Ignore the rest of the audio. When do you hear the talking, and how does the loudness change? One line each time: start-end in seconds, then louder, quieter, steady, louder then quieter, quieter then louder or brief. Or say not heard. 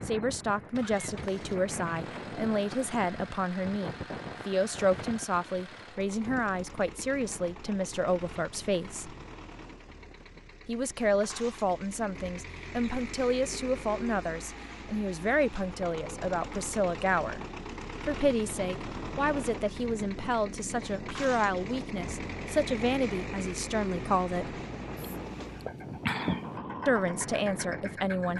0.1-9.2 steady
10.7-17.4 steady
18.1-24.6 steady
26.9-28.3 brief.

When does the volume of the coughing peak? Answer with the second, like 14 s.
26 s.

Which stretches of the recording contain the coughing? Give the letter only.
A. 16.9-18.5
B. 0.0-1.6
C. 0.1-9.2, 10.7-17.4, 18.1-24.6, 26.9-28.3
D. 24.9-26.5
D.